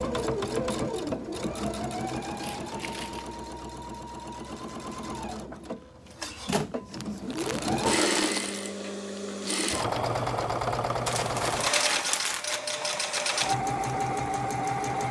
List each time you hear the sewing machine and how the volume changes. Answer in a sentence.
The sewing machine can be heard from 0.0 to 15.0 s, getting quieter then louder.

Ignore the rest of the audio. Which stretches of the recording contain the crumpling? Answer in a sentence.
You can hear the crumpling from 2.4 to 3.4 s, from 7.0 to 8.6 s and from 11.1 to 12.6 s.